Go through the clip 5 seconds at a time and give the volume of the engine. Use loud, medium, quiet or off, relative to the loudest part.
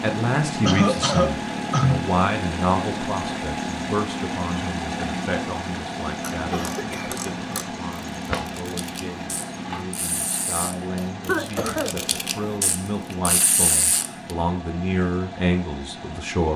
loud, loud, medium, medium.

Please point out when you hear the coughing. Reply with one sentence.
You can hear the coughing from 0.7 to 2.1 s, from 6.5 to 7.2 s and from 11.2 to 12.0 s.